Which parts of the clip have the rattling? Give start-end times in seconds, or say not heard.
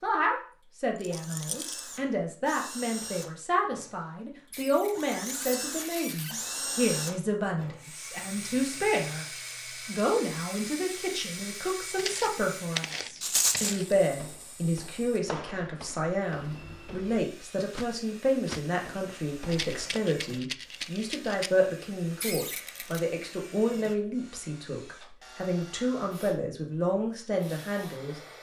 1.0-1.8, 13.2-13.8, 19.5-21.5.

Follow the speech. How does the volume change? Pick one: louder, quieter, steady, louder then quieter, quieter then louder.
steady.